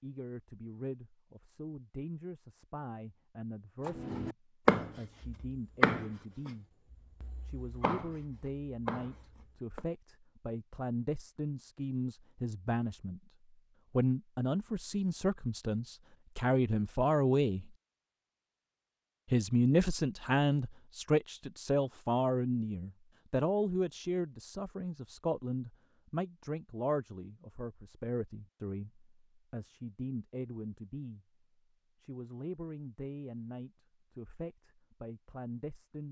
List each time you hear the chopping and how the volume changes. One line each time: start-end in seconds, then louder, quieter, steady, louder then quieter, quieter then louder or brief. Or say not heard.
3.8-9.8 quieter then louder.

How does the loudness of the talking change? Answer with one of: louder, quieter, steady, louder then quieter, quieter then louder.
louder then quieter.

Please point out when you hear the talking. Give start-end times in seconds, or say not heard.
0.0-6.7, 7.5-13.2, 13.9-17.7, 19.3-31.2, 32.0-36.0.